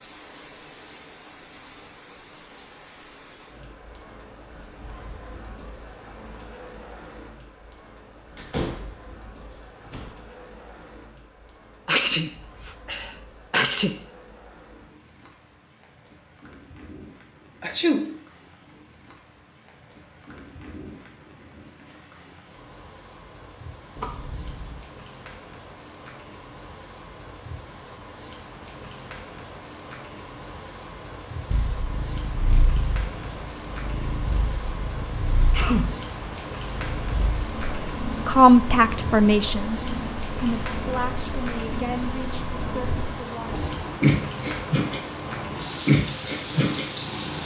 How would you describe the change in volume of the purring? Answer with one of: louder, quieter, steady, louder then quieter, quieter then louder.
louder.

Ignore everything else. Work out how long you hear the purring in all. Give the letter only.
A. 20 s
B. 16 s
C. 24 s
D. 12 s
B.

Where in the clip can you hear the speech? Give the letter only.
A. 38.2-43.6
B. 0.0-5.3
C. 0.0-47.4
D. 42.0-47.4
A.